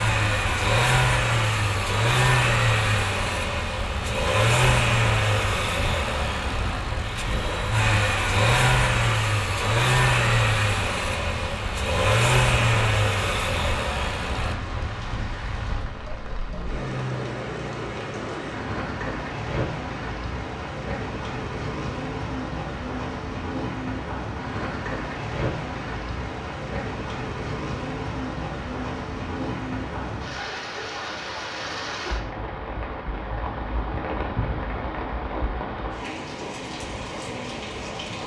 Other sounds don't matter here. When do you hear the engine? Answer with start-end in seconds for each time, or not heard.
0.0-14.6.